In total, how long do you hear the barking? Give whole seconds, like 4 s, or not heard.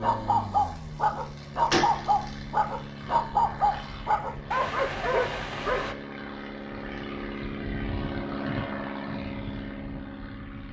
6 s.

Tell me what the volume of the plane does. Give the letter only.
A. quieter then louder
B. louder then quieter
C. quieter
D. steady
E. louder
E.